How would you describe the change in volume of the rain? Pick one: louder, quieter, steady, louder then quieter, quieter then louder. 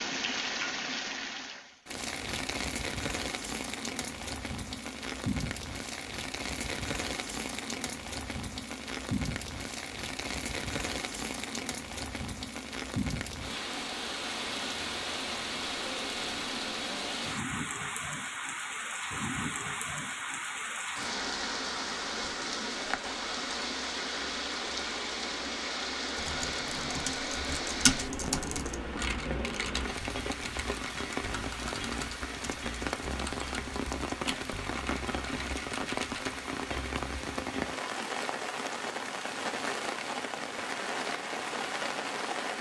steady.